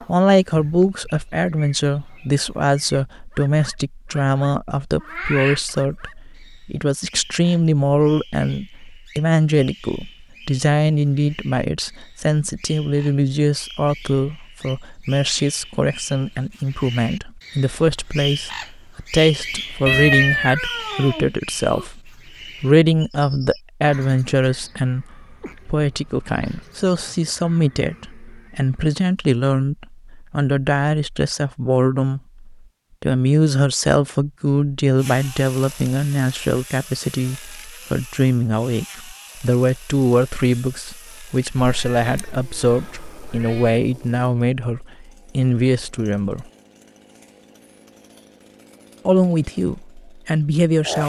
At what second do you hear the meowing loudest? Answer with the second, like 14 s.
20 s.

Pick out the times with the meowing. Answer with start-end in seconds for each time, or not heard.
5.0-5.7, 19.9-21.9, 41.5-43.8.